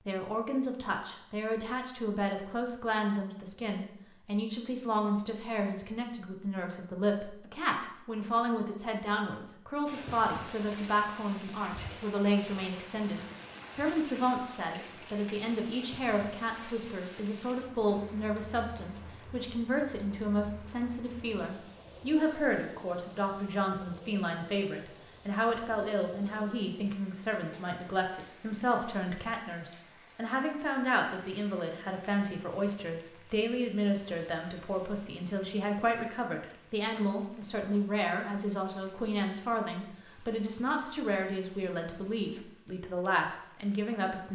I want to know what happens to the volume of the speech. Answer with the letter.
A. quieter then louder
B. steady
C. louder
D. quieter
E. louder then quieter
B.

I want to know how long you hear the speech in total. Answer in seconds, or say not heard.
44 s.